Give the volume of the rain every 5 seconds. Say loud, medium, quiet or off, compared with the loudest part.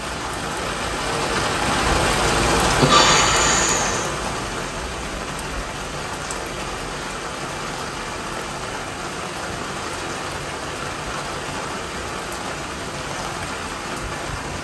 loud, medium, medium.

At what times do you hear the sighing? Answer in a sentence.
The sighing can be heard from 2.8 to 4.1 s.